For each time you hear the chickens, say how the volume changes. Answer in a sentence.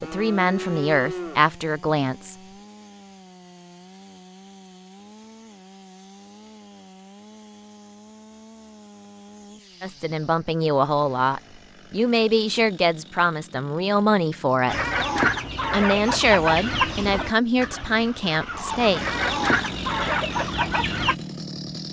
The chickens can be heard from 14.7 to 21.1 s, getting quieter then louder.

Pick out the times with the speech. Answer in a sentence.
You can hear the speech from 0.0 to 2.4 s, from 9.8 to 14.8 s and from 15.7 to 19.0 s.